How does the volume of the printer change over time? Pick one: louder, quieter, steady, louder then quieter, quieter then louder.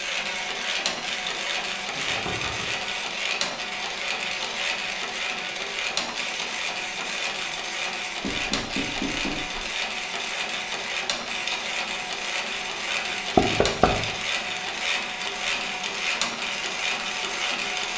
steady.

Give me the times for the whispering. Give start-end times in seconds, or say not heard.
not heard.